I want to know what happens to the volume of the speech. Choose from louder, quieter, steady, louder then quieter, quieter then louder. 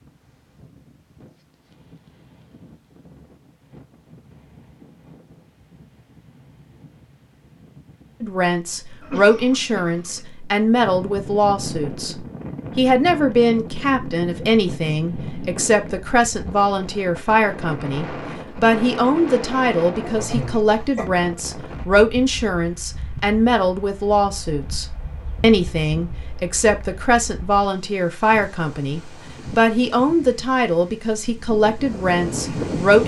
steady.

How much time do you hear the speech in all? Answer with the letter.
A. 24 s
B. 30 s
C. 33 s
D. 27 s
A.